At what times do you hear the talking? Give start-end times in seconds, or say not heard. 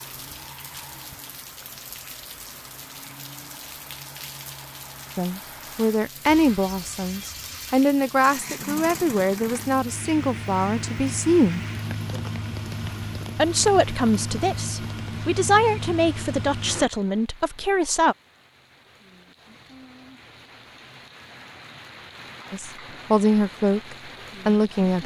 5.2-11.7, 13.3-18.1, 22.5-25.0.